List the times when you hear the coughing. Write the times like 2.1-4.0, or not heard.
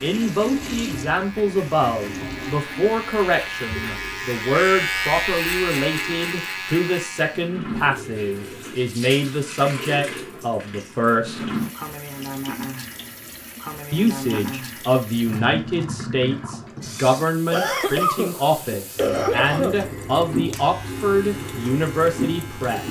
17.5-19.8.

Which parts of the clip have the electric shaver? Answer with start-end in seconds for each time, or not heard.
0.0-7.5, 20.3-22.8.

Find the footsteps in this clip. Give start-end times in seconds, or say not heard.
not heard.